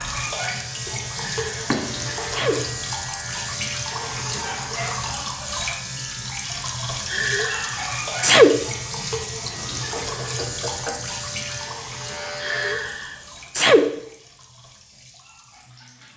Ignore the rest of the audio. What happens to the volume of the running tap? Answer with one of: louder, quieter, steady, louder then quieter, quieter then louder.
quieter.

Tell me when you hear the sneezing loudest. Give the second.
8 s.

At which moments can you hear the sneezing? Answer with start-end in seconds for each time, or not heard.
1.1-2.6, 7.1-8.7, 12.4-14.0.